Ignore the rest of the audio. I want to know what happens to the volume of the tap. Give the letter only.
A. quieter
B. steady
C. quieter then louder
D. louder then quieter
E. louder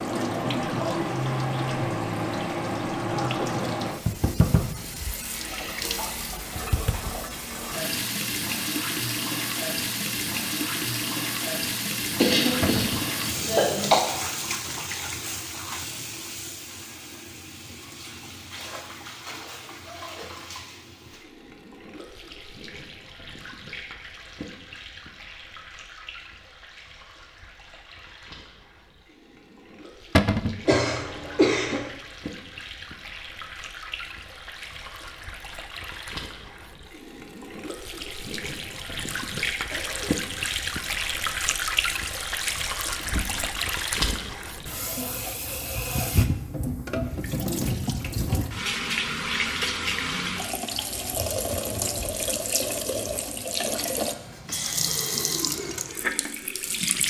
C.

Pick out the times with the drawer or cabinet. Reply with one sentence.
The drawer or cabinet can be heard from 12.6 to 13.1 s, from 30.1 to 30.6 s and from 43.0 to 44.2 s.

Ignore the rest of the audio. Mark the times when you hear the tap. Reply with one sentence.
The tap can be heard from 0.0 to 57.0 s.